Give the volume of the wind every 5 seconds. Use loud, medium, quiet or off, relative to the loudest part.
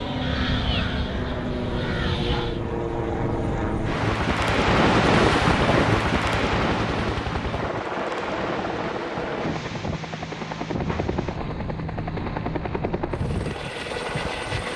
loud, loud, medium.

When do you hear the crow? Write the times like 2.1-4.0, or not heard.
0.0-2.6.